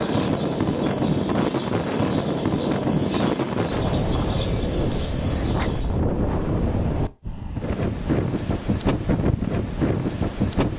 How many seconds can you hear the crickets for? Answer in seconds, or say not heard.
6 s.